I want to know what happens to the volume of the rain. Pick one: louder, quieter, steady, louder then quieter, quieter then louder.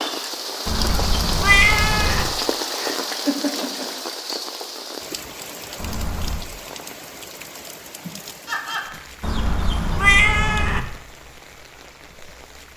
quieter.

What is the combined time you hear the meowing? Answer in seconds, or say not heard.
4 s.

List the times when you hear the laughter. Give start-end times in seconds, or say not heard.
2.7-3.9, 8.1-8.9.